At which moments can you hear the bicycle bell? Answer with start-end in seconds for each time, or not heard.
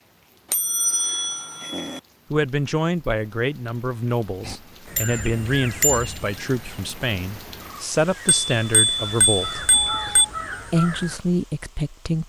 0.5-2.0, 5.0-6.2, 8.2-10.2.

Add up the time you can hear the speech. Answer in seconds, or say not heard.
9 s.